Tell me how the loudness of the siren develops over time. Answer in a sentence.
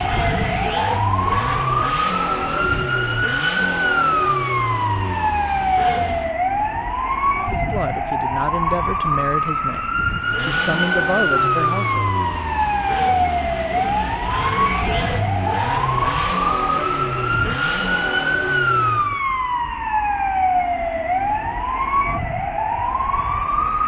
The loudness of the siren stays about the same.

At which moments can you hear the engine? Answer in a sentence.
The engine can be heard from 0.0 to 6.4 s and from 10.2 to 19.1 s.